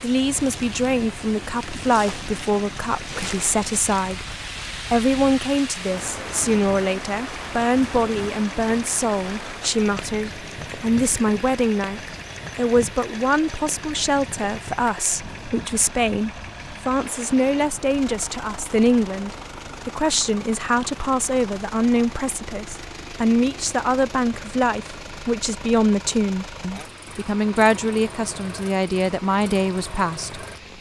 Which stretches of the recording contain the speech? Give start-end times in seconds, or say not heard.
0.0-30.7.